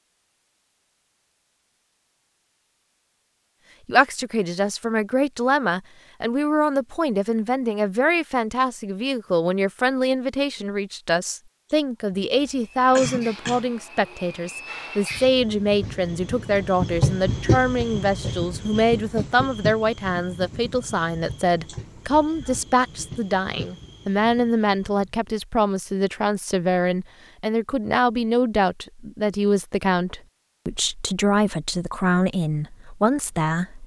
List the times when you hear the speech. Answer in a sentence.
The speech can be heard from 3.9 to 33.8 s.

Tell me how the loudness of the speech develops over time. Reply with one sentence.
The volume of the speech stays about the same.